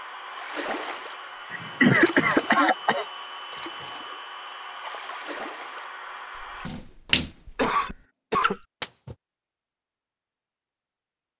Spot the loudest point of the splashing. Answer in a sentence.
The volume of the splashing peaks at 7 seconds.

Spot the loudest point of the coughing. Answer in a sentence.
The volume of the coughing peaks at 2 seconds.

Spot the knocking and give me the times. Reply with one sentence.
The knocking can't be heard in this clip.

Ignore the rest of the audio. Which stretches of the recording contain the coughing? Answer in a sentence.
The coughing can be heard from 1.5 to 3.0 s and from 7.5 to 8.6 s.